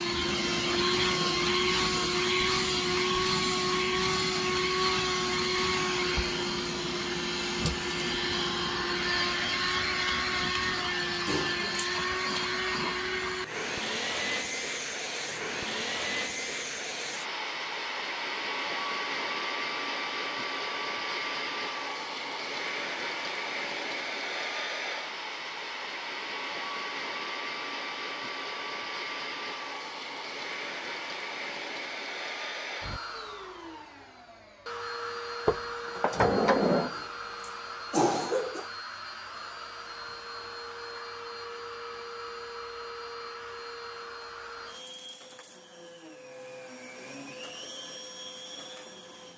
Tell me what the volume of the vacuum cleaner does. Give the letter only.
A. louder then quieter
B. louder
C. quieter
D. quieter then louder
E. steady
C.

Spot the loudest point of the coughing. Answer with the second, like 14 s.
38 s.